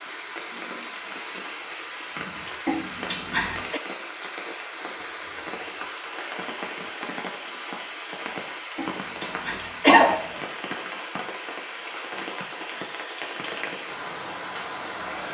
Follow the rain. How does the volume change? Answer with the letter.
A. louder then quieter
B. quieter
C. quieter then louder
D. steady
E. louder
D.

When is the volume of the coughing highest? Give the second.
10 s.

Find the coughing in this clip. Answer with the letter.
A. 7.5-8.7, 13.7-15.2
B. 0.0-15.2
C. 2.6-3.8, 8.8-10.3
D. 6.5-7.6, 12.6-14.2
C.